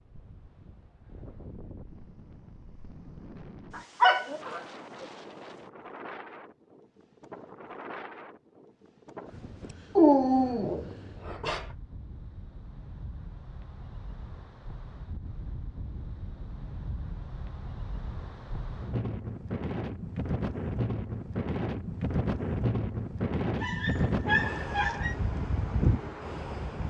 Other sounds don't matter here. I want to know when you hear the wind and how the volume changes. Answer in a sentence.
The wind can be heard from 0.0 to 26.8 s, getting louder.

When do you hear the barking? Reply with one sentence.
The barking can be heard from 3.8 to 5.0 s, from 9.9 to 11.7 s and from 23.6 to 25.1 s.